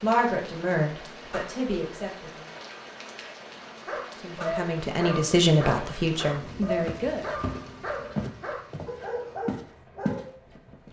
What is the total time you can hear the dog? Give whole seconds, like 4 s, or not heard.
7 s.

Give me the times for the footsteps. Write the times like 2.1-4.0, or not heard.
6.8-10.2.